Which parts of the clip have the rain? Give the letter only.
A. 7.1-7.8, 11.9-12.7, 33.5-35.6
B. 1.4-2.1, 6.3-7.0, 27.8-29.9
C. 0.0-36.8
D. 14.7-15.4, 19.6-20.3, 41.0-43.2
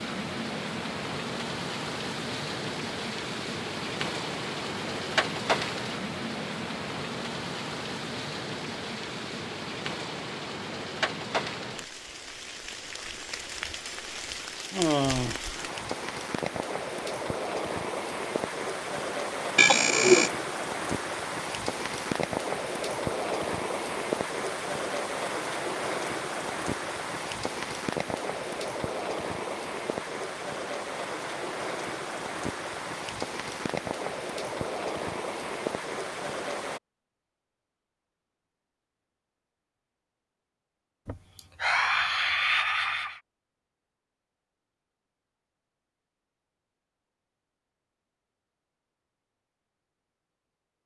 C.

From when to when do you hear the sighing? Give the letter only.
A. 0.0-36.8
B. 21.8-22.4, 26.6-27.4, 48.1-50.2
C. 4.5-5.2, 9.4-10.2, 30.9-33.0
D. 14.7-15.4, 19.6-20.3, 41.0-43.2
D.